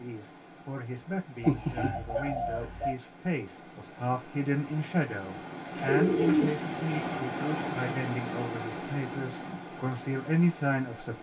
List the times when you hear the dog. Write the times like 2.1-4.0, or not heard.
not heard.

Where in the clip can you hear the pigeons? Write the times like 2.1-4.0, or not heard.
1.4-3.0, 5.8-7.2.